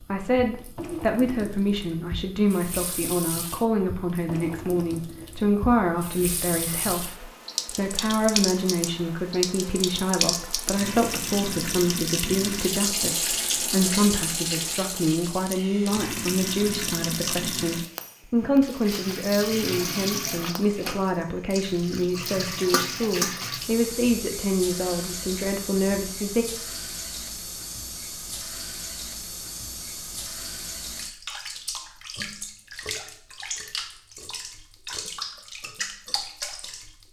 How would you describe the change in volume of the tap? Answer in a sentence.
The loudness of the tap goes up, then down.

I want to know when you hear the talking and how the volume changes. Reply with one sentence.
You can hear the talking from 0.0 to 26.4 s, at a steady volume.